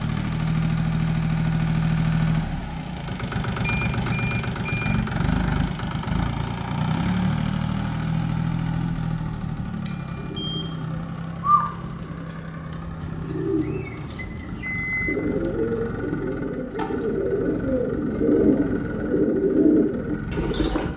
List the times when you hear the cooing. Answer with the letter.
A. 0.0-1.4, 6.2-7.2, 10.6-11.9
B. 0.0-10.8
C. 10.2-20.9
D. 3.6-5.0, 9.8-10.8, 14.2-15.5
C.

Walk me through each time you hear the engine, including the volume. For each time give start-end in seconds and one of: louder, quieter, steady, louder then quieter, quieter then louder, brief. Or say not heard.
0.0-20.9 quieter.